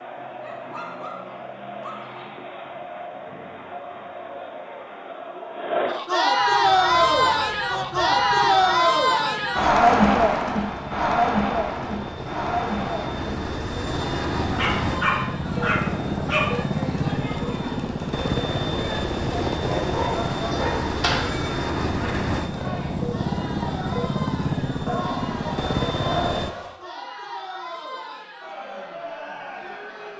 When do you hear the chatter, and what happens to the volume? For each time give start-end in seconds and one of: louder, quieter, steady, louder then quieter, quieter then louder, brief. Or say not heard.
0.0-30.1 louder then quieter.